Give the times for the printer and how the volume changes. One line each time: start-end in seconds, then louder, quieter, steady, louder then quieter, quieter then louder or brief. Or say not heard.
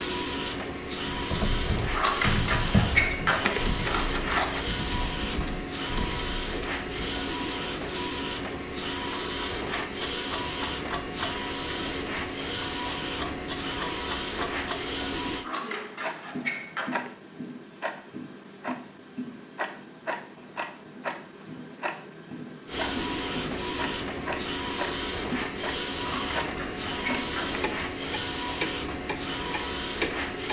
0.0-15.5 steady
22.6-30.4 steady.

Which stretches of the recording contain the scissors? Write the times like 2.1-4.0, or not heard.
1.9-4.7, 15.4-17.1, 26.0-27.6.